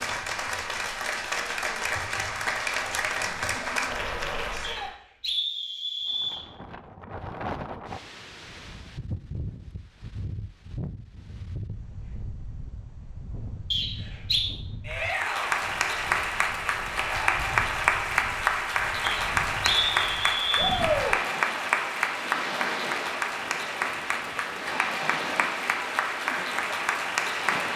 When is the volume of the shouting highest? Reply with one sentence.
The volume of the shouting peaks at 21 seconds.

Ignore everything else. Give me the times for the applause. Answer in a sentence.
You can hear the applause from 0.0 to 4.9 s and from 14.9 to 27.7 s.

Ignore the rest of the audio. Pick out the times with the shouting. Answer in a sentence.
You can hear the shouting from 4.5 to 4.9 s, from 14.8 to 15.6 s and from 20.6 to 21.1 s.